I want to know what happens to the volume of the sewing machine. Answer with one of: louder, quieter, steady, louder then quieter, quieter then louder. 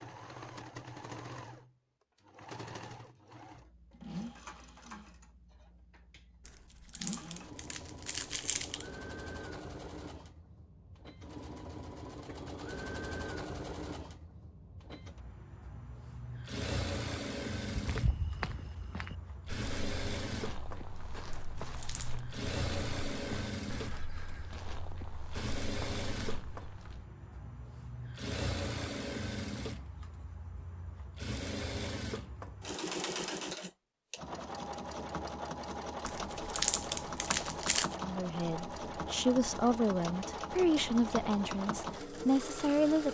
louder.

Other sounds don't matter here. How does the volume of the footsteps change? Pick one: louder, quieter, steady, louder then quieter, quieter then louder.
quieter.